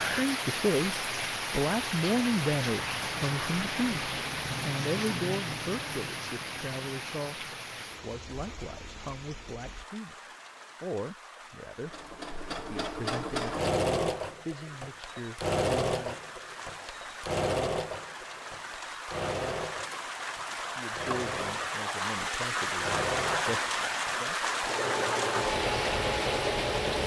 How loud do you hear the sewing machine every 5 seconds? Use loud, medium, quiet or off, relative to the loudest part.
off, off, loud, loud, medium, loud.